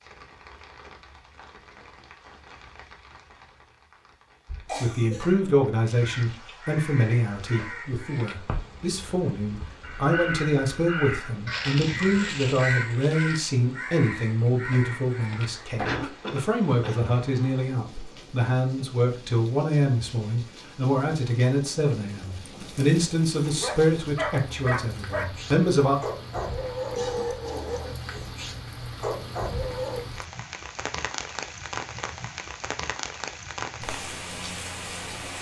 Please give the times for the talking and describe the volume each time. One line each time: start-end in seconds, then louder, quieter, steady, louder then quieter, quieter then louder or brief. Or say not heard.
4.8-26.0 steady.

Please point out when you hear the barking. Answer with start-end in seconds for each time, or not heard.
22.4-30.1.